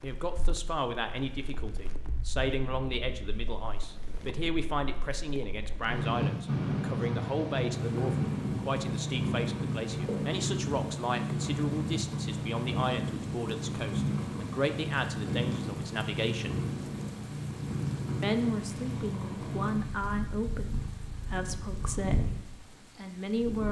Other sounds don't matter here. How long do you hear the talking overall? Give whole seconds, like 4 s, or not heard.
22 s.